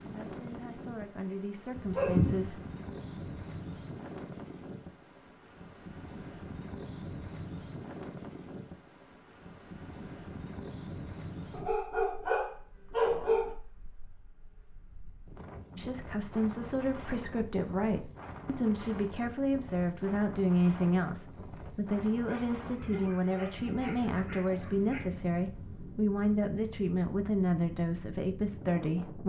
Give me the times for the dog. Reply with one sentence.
You can hear the dog from 1.8 to 2.5 s, from 11.5 to 13.6 s and from 22.2 to 25.1 s.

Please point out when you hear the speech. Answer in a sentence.
You can hear the speech from 0.0 to 2.6 s and from 15.8 to 29.2 s.